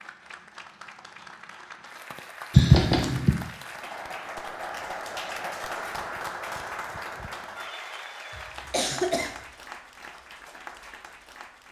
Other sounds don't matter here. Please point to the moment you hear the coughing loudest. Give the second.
3 s.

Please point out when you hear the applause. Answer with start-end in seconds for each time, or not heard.
0.0-11.6.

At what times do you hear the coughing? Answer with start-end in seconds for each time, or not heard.
2.5-3.4, 8.3-9.3.